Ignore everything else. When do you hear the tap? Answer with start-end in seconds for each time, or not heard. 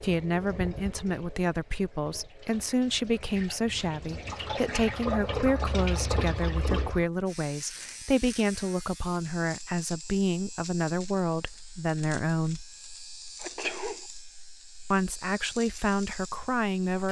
0.0-7.0.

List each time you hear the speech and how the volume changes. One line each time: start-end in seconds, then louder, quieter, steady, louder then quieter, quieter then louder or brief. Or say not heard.
0.0-12.6 steady
14.9-17.0 brief.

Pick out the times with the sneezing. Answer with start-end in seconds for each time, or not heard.
13.4-14.0.